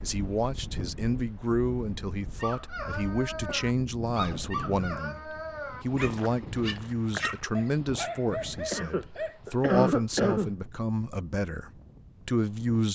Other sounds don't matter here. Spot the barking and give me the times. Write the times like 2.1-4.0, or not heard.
2.3-9.4.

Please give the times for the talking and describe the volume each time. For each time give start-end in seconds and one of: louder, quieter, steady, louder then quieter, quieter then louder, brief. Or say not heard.
0.0-12.8 steady.